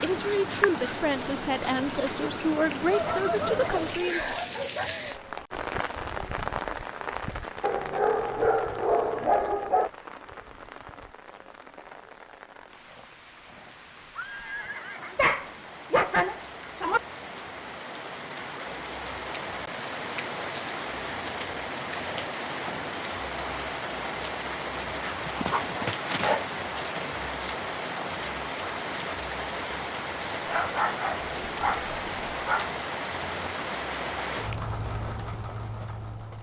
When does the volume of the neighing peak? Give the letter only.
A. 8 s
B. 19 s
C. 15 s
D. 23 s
C.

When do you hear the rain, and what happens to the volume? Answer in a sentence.
The rain can be heard from 0.0 to 36.3 s, getting quieter then louder.